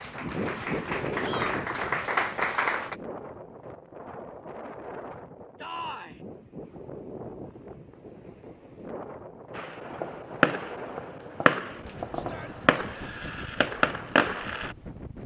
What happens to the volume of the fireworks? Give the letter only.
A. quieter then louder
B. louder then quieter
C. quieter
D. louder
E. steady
A.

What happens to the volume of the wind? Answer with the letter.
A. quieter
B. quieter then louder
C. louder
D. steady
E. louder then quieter
A.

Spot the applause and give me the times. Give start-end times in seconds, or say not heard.
0.0-3.0.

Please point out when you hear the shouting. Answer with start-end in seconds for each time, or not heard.
1.2-1.6, 5.6-6.2, 12.2-12.7.